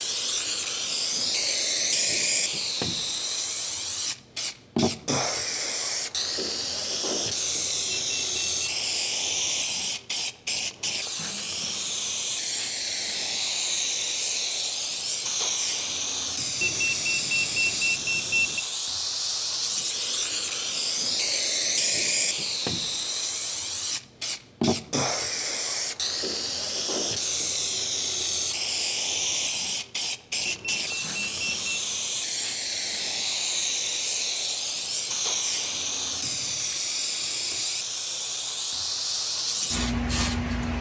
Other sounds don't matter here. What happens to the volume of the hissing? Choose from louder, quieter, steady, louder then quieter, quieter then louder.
steady.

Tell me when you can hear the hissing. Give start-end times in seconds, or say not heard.
0.0-40.7.